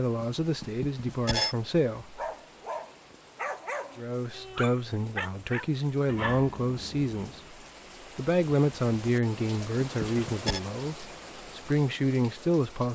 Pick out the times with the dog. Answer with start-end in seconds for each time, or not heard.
1.9-7.5.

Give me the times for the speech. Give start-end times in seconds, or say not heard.
0.0-2.2, 4.0-7.5, 8.2-12.8.